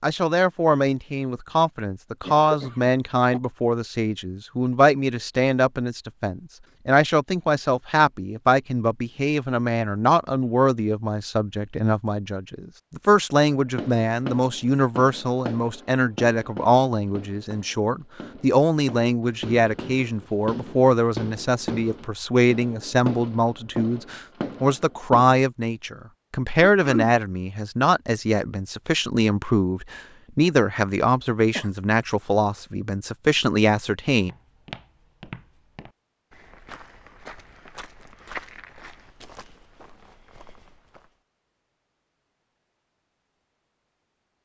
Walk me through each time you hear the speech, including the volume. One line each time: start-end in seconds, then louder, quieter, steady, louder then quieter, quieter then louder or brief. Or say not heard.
0.0-34.3 steady.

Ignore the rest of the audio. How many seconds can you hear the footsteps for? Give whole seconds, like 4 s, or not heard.
7 s.